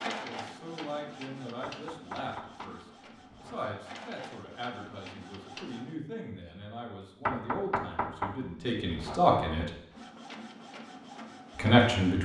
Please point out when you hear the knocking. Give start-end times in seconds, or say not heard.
1.6-3.5, 7.2-9.2.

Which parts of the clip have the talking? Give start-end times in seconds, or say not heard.
0.1-9.7, 11.6-12.1.